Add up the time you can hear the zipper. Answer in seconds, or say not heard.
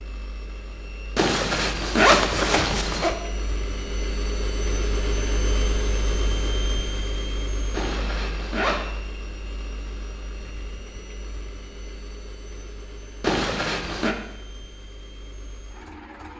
4 s.